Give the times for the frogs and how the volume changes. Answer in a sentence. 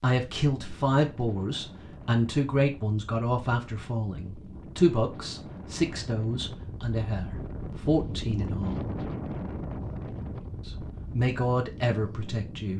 You can't hear the frogs here.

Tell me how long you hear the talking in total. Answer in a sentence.
You can hear the talking for 11 seconds altogether.